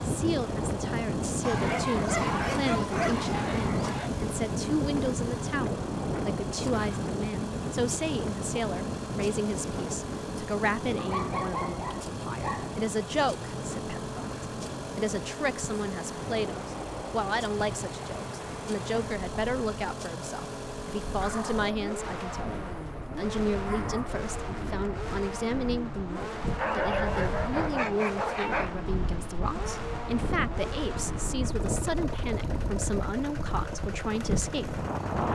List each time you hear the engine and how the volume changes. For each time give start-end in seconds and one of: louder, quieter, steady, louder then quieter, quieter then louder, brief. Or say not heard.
0.0-35.2 steady.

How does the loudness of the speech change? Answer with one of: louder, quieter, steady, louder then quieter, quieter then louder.
steady.